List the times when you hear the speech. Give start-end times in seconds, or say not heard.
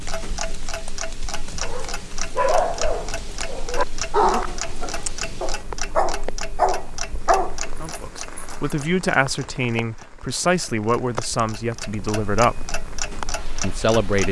7.8-12.7, 13.6-14.2.